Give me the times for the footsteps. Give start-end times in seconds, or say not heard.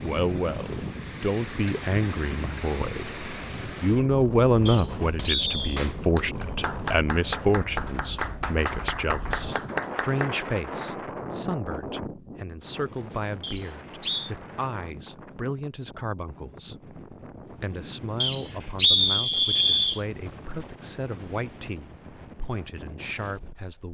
not heard.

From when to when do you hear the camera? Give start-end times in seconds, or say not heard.
not heard.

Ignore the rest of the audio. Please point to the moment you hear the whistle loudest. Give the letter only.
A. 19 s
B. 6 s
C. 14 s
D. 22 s
A.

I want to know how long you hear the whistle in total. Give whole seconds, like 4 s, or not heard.
4 s.